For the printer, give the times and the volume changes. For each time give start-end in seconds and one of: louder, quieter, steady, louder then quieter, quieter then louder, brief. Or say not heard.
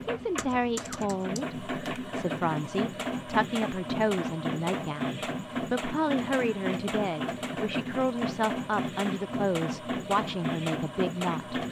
0.0-11.6 steady.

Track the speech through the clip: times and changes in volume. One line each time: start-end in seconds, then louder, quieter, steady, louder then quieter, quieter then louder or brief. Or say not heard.
0.1-11.6 steady.